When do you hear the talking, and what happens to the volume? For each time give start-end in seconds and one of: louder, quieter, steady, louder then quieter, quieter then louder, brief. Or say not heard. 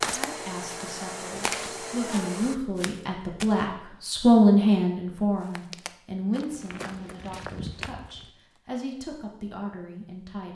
0.2-10.5 louder then quieter.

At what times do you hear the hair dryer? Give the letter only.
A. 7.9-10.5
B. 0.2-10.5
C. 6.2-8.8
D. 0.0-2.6
D.